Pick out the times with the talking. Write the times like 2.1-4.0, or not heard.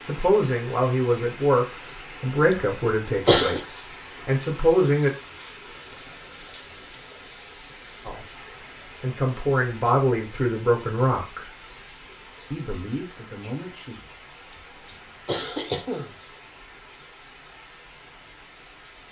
0.0-5.1, 8.0-11.5, 12.5-13.9.